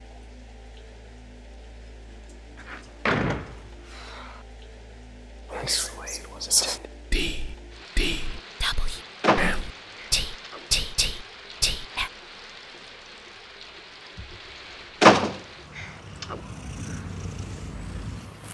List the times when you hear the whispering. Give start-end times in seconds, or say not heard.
5.5-12.1.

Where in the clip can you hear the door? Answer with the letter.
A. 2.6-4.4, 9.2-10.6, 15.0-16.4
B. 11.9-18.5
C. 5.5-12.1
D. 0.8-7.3
A.